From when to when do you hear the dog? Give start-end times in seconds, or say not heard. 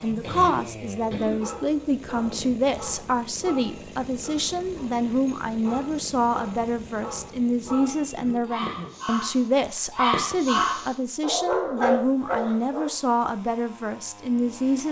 1.2-12.9.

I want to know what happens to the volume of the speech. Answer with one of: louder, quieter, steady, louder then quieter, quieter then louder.
steady.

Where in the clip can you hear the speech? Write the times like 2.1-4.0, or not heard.
0.0-14.8.